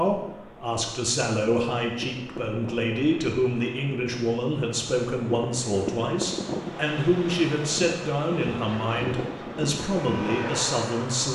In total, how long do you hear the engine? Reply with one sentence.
You can hear the engine for 3 seconds altogether.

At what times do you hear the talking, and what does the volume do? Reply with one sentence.
The talking can be heard from 0.0 to 11.2 s, at a steady volume.